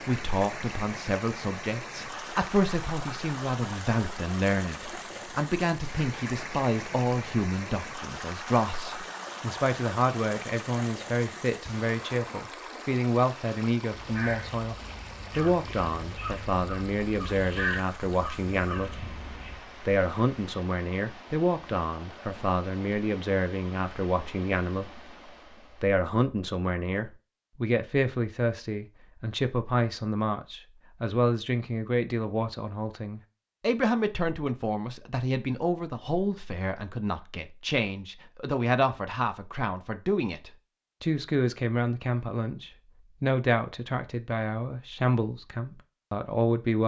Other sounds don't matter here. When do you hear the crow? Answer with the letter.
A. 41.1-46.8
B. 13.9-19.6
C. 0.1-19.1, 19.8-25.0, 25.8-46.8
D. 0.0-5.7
B.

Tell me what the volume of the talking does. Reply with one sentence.
The volume of the talking stays about the same.